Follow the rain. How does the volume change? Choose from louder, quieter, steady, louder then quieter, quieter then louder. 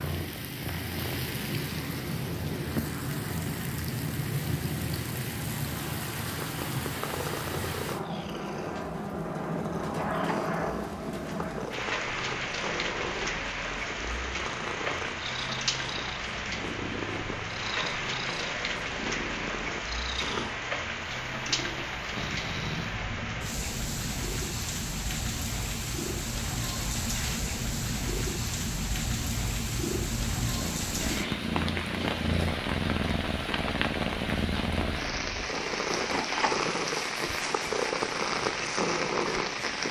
steady.